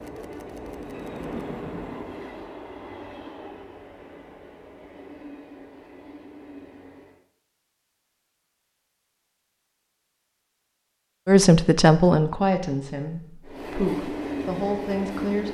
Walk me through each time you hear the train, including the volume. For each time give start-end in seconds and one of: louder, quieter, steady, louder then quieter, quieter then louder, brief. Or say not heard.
0.0-7.2 quieter
13.4-15.4 brief.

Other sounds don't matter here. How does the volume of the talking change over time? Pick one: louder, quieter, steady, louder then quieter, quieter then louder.
quieter then louder.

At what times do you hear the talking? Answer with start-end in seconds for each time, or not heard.
11.2-15.4.